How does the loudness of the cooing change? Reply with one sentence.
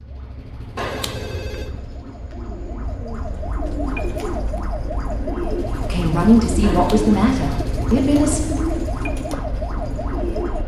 The loudness of the cooing goes up.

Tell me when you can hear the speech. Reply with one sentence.
The speech can be heard from 5.9 to 8.4 s.